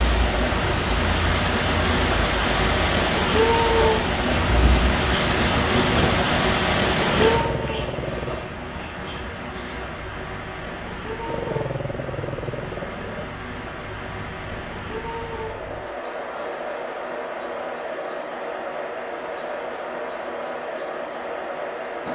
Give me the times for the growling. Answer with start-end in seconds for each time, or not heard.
7.2-8.4, 11.2-13.2.